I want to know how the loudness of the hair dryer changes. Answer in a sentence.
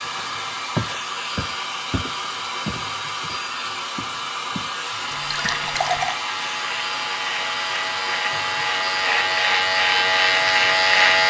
The loudness of the hair dryer stays about the same.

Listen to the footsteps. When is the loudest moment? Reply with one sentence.
The volume of the footsteps peaks at 1 second.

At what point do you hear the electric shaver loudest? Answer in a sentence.
The loudest moment of the electric shaver is at 11 seconds.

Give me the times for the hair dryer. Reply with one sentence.
You can hear the hair dryer from 0.0 to 11.2 s.